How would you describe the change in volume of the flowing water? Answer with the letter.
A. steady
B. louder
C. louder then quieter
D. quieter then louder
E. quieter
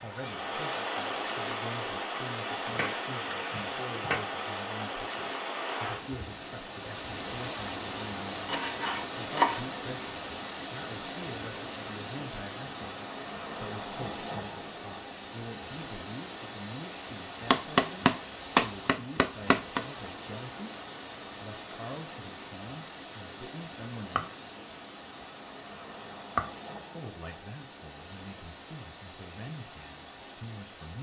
E.